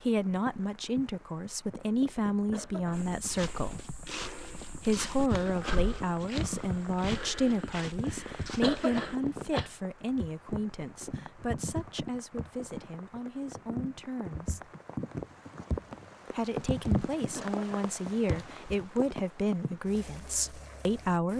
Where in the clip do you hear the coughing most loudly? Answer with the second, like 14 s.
9 s.